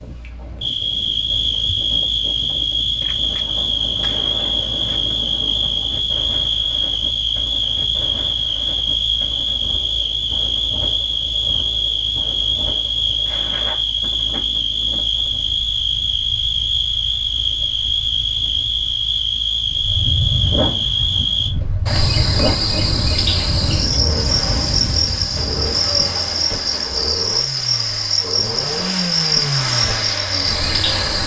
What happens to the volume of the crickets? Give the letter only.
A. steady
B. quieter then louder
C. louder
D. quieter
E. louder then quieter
A.